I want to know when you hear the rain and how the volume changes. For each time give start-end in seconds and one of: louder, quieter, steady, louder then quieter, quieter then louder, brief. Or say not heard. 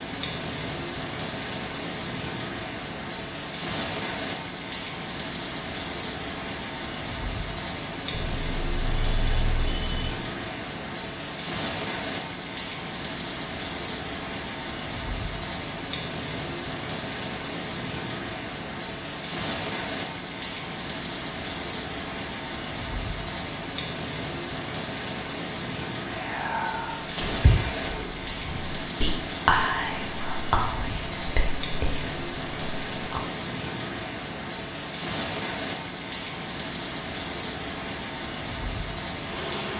0.0-39.7 steady.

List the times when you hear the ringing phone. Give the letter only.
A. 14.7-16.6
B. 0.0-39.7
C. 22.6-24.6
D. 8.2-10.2
D.